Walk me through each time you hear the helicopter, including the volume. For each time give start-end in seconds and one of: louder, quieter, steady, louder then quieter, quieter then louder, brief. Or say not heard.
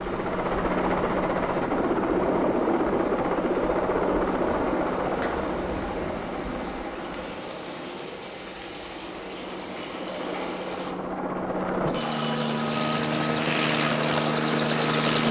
0.0-15.2 quieter then louder.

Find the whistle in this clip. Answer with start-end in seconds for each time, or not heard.
not heard.